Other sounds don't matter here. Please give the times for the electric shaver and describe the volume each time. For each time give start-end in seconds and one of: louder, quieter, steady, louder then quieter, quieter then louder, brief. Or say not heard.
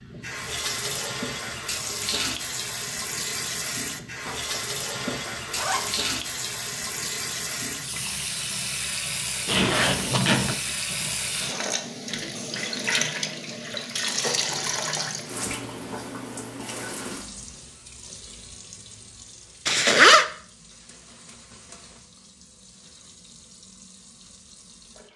not heard.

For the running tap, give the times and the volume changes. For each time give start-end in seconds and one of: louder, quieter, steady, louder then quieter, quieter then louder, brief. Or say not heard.
0.0-25.1 quieter.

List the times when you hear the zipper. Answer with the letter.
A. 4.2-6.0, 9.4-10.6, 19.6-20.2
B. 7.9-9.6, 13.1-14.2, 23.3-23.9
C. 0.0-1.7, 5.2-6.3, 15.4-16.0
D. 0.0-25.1
A.